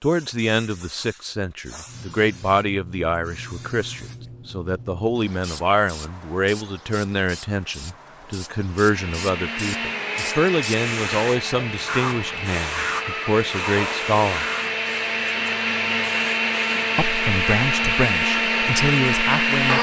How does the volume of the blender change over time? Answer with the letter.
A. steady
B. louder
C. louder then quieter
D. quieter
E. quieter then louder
B.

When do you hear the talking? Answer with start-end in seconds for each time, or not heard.
0.0-14.5, 16.9-19.7.